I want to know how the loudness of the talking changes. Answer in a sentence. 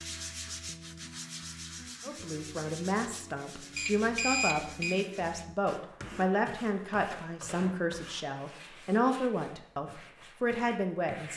The volume of the talking stays about the same.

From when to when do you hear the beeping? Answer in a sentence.
The beeping can be heard from 3.8 to 5.0 s.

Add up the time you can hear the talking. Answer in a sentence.
The talking can be heard for 9 seconds in total.